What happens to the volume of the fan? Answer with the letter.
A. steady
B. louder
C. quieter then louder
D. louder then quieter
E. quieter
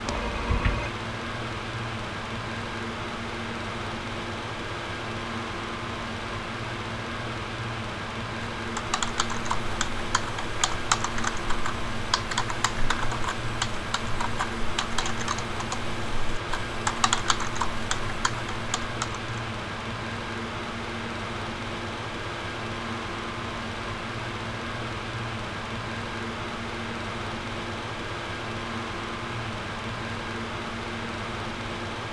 A.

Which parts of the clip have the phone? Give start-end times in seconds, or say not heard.
0.1-0.9.